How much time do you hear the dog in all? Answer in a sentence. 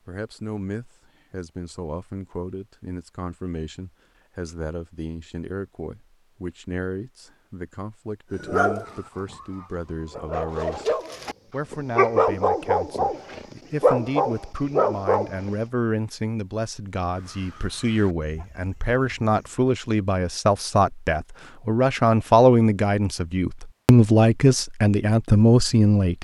The dog can be heard for 7 seconds in total.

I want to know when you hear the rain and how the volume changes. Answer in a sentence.
The rain can't be heard in this clip.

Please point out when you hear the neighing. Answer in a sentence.
You can't hear the neighing here.